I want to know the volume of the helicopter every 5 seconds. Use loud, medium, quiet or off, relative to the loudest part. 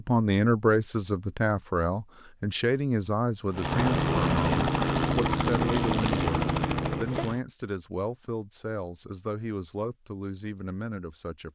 loud, loud, off.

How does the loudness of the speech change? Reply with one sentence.
The loudness of the speech goes down.